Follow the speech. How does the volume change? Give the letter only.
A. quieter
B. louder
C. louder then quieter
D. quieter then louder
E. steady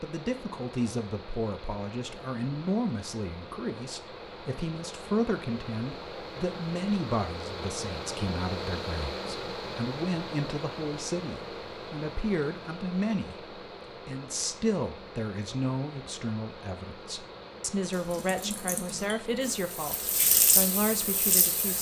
E.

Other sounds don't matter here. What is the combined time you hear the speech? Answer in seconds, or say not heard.
22 s.